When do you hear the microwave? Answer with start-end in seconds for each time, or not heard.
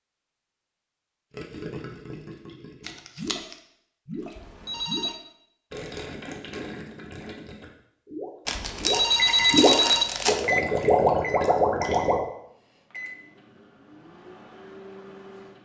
9.2-15.6.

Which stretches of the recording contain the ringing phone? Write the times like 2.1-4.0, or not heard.
4.3-5.2, 8.6-10.1.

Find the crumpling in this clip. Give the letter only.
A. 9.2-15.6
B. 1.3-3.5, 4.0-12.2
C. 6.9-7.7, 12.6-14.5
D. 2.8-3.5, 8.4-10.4
D.